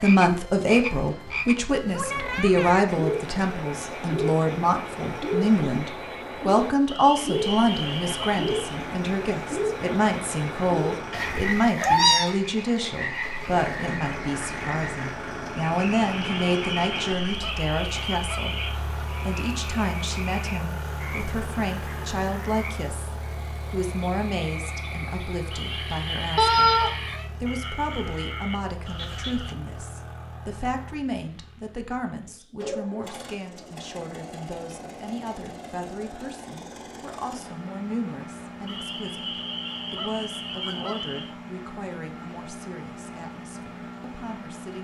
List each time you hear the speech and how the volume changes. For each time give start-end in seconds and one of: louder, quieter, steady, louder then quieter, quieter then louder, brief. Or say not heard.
0.0-44.7 quieter.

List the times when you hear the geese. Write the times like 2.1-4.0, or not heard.
6.8-8.8, 16.1-18.8, 25.5-27.1, 38.6-41.4.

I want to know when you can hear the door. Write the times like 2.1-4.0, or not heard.
not heard.